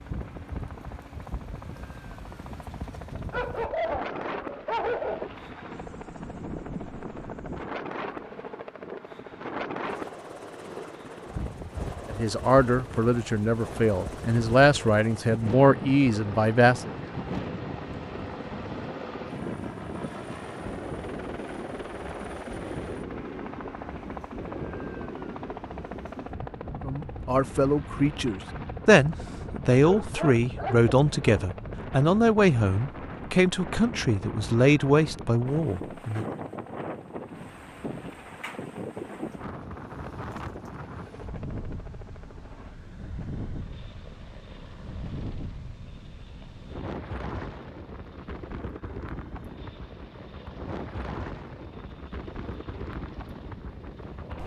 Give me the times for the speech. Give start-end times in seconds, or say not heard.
12.1-16.9, 26.9-36.2.